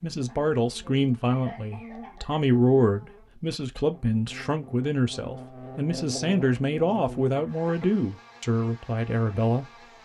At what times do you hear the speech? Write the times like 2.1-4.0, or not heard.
0.0-9.7.